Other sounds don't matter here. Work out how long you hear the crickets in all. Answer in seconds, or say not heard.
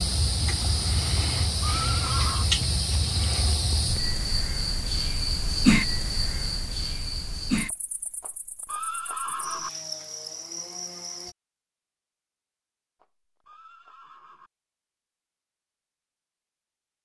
11 s.